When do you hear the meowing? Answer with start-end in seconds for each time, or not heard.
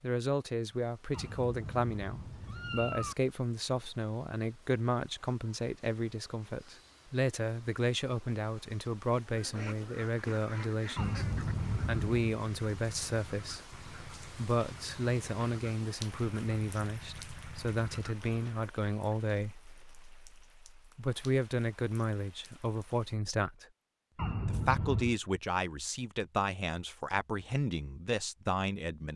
1.1-3.1, 10.9-12.3, 24.1-25.1.